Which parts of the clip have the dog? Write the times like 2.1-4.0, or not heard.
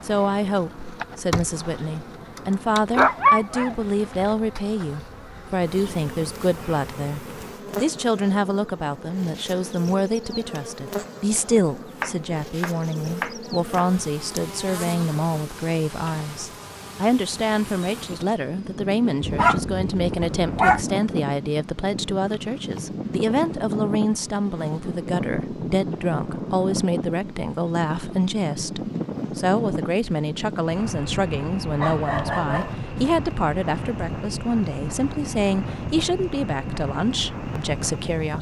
3.0-4.3, 19.2-20.9, 31.8-32.8.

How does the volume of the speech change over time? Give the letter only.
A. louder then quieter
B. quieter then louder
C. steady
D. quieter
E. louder
C.